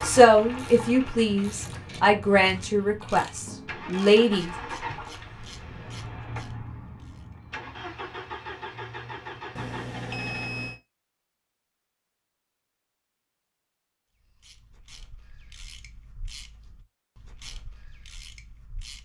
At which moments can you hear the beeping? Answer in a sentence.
The beeping can be heard from 9.6 to 10.8 s.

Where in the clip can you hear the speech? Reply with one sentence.
You can hear the speech from 0.0 to 4.5 s.